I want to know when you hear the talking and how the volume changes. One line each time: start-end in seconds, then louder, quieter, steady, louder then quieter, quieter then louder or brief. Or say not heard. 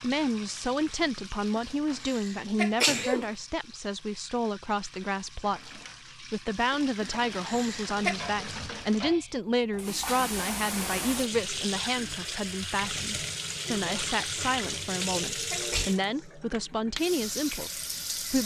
0.0-18.4 steady.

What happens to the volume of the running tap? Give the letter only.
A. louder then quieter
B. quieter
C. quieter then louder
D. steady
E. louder
E.